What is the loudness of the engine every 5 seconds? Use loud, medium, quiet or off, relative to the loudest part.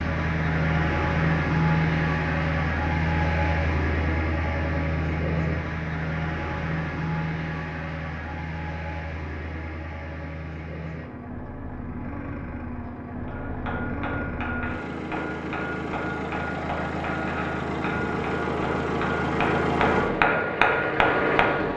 loud, medium, medium, loud, loud.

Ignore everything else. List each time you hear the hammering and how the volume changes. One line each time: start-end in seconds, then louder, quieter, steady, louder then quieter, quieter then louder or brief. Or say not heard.
13.2-21.6 louder.